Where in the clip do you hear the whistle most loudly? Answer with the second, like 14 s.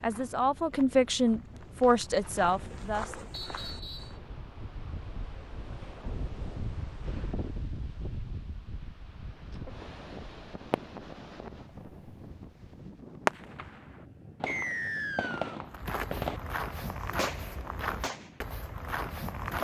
15 s.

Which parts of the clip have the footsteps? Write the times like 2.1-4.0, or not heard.
0.0-4.2, 15.7-19.5.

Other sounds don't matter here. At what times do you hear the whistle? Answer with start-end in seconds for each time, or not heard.
3.3-4.2, 14.4-15.6.